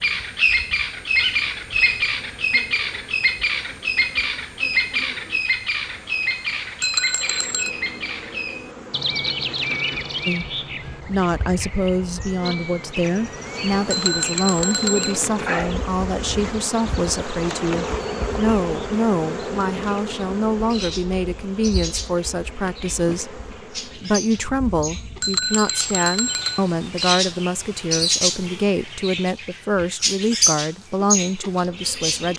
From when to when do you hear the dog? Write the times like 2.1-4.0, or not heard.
not heard.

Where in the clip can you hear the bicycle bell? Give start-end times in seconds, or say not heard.
6.8-7.7, 13.9-15.2, 25.2-26.6.